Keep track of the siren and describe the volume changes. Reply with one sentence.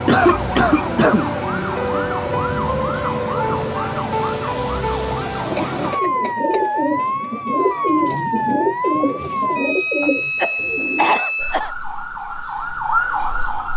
The loudness of the siren stays about the same.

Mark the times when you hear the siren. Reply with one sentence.
The siren can be heard from 0.0 to 13.7 s.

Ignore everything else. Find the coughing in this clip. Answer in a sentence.
You can hear the coughing from 0.1 to 1.3 s, from 5.7 to 6.7 s and from 10.0 to 11.7 s.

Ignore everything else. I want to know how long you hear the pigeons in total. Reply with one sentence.
The pigeons can be heard for 6 seconds in total.